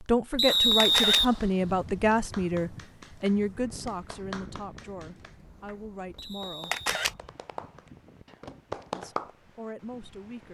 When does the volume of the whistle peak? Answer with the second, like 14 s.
1 s.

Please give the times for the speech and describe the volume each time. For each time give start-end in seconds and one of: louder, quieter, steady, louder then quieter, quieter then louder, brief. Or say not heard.
0.0-6.8 quieter
8.9-10.4 brief.